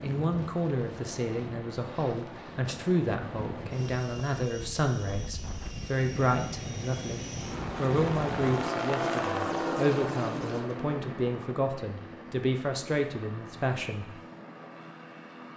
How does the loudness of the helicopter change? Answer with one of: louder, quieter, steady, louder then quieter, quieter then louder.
louder then quieter.